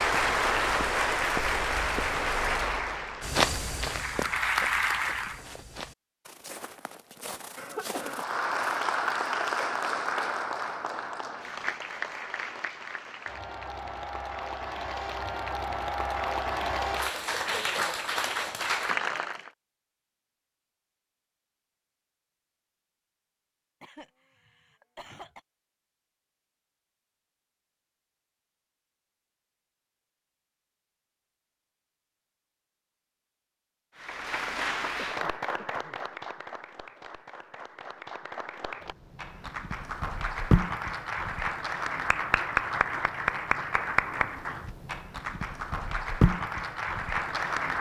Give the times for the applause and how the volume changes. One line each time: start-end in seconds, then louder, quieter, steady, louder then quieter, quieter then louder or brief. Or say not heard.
0.0-5.4 quieter then louder
8.0-19.5 quieter then louder
34.0-47.7 quieter then louder.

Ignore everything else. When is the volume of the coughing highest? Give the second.
8 s.